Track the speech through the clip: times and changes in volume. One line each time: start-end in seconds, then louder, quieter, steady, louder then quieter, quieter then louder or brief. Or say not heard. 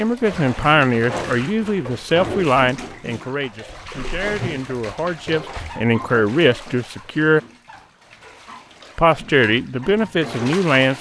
0.0-7.4 quieter then louder
8.9-10.9 brief.